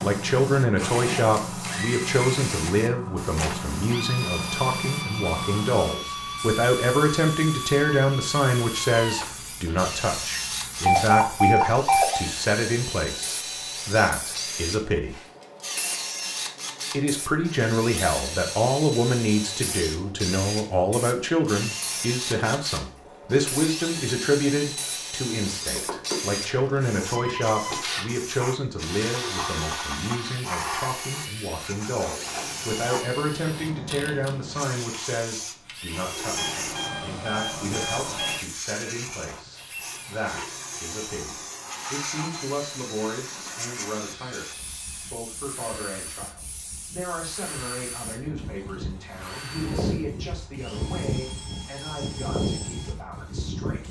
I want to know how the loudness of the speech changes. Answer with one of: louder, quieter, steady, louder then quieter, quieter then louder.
quieter.